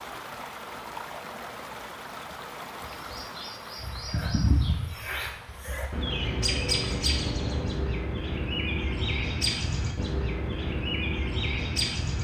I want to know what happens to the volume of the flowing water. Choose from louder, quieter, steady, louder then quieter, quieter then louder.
quieter.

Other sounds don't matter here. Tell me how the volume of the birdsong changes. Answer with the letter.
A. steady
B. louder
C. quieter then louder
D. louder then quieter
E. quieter
A.